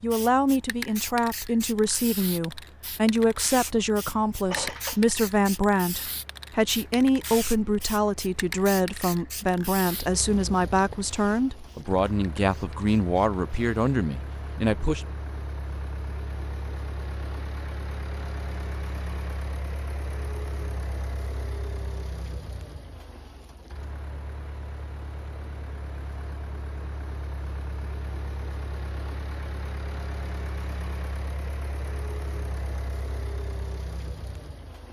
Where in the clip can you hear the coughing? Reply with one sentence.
The coughing can be heard from 4.5 to 5.0 s.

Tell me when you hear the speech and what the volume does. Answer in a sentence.
You can hear the speech from 0.0 to 15.1 s, at a steady volume.